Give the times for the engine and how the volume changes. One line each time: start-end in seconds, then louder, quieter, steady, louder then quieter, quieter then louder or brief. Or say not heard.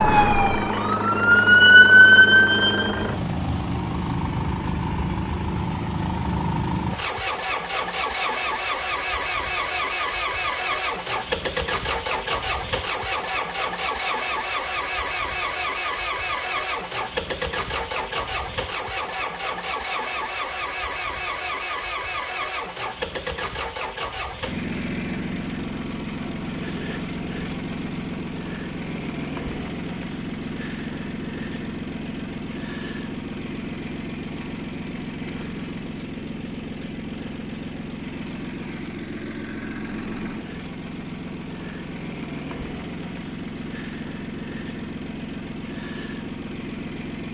0.0-47.2 quieter.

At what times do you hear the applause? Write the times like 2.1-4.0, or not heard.
not heard.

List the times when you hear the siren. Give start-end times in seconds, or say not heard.
0.0-2.9.